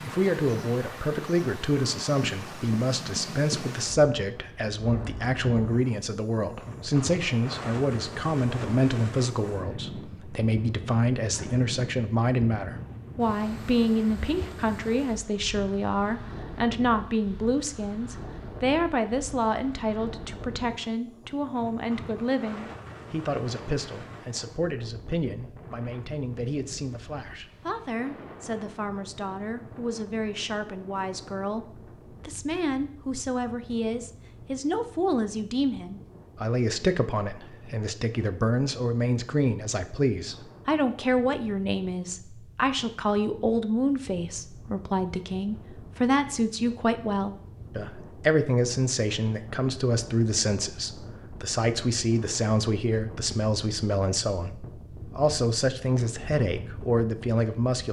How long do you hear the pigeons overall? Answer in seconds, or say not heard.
not heard.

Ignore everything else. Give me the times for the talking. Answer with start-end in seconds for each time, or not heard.
0.0-57.8.